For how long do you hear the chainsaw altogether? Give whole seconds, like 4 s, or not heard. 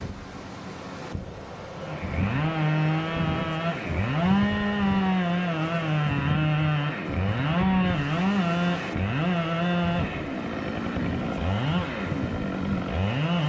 12 s.